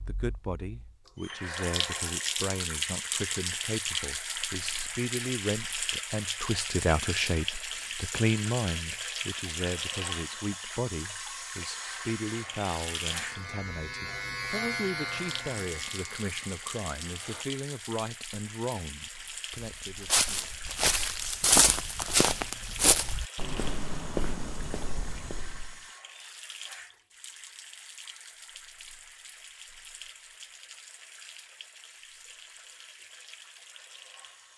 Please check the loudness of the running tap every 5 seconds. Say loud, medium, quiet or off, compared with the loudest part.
loud, loud, loud, medium, medium, quiet, quiet.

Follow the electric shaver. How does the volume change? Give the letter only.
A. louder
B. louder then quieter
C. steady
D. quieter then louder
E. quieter
B.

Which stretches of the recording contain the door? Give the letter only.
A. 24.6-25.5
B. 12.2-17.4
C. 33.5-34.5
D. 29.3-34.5
A.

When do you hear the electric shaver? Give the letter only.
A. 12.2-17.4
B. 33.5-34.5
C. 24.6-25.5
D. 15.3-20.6
A.